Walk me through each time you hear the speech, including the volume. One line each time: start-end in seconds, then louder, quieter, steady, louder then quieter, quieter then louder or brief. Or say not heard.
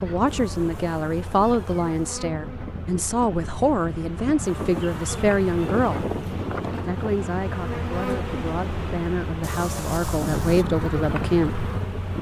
0.0-6.1 steady
6.8-11.7 louder.